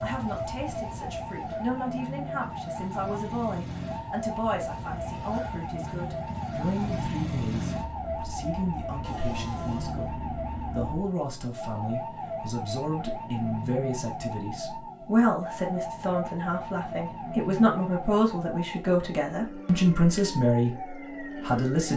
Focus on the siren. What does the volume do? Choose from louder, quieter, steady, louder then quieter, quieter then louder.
steady.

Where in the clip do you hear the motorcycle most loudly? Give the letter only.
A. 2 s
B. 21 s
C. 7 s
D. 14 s
C.